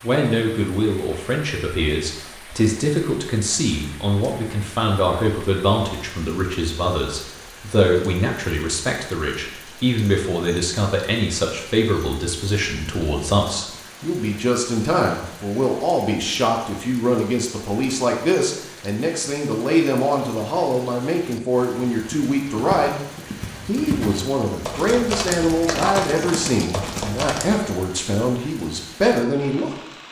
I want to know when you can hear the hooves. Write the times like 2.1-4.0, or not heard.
21.9-27.6.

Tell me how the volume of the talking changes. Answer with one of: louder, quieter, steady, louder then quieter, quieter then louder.
steady.